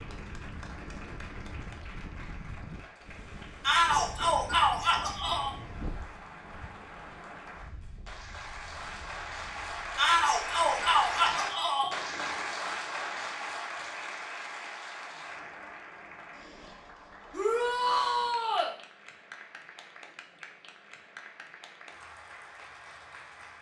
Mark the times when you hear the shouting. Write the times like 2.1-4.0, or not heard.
3.6-5.5, 9.9-11.9, 17.3-18.8.